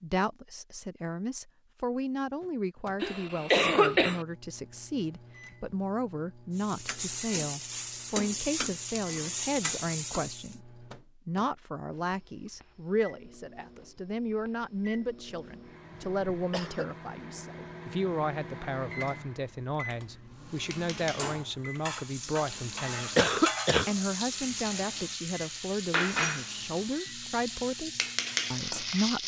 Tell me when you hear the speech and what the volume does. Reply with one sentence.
The speech can be heard from 0.0 to 29.2 s, at a steady volume.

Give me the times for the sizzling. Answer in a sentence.
You can hear the sizzling from 6.5 to 10.6 s and from 20.4 to 29.2 s.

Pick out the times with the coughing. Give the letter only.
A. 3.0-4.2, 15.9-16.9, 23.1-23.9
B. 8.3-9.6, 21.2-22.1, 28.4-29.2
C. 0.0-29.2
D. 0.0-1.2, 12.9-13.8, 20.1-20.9
A.